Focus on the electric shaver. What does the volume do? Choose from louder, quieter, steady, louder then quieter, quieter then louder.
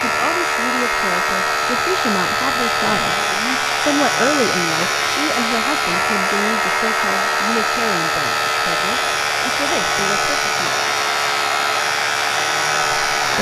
steady.